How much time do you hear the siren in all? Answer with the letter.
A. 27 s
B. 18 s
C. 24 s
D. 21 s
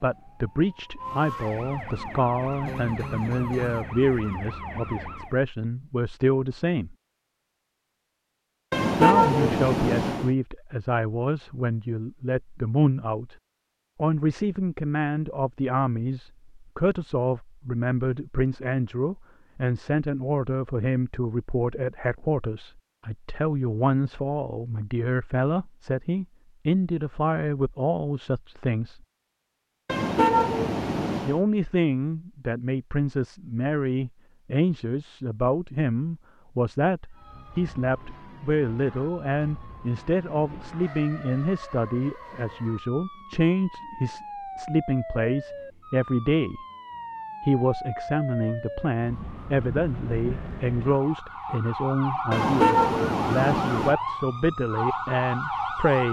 C.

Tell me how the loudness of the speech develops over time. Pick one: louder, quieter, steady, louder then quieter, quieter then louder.
steady.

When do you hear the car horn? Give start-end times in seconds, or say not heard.
8.7-10.3, 29.9-31.4, 52.3-54.0.